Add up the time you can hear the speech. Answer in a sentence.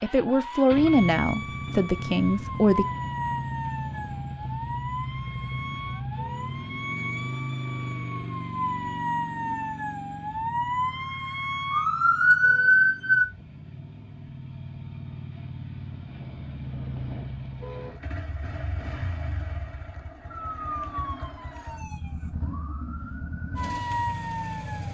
The speech can be heard for 3 seconds in total.